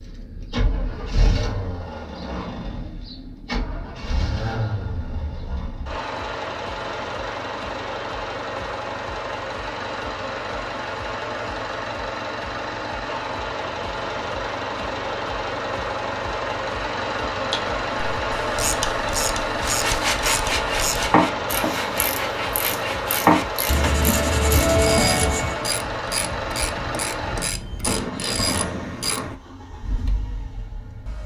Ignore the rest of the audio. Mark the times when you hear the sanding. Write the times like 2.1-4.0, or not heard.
19.6-25.6.